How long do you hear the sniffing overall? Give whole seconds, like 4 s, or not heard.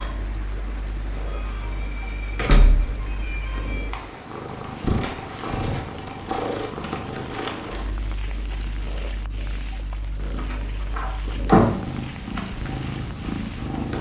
3 s.